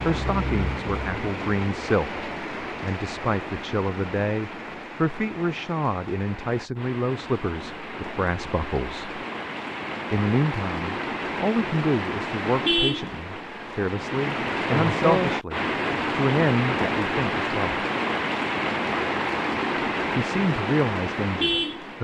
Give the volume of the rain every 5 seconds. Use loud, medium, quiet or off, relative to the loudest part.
medium, medium, loud, loud, loud.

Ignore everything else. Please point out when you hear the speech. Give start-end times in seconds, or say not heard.
0.1-9.2, 10.1-17.9, 20.1-21.9.